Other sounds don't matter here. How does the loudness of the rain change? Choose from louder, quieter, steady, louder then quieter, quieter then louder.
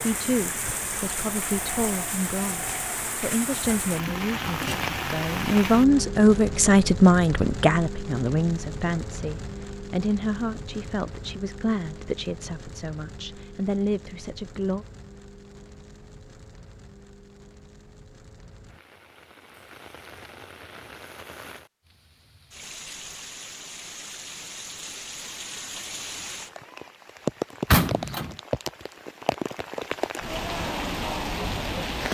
quieter then louder.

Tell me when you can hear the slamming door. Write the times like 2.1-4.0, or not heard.
27.7-28.4.